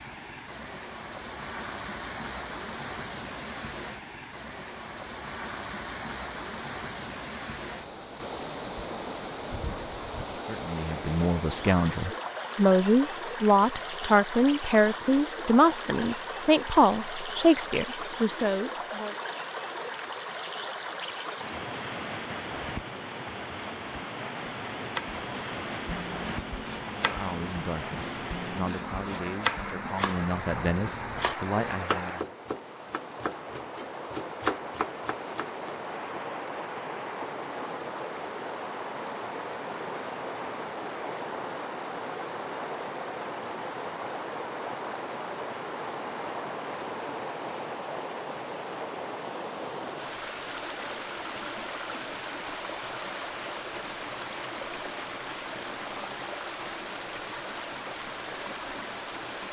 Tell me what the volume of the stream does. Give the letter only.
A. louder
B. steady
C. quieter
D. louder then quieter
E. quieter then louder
B.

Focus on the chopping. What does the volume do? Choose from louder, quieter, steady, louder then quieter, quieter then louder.
louder.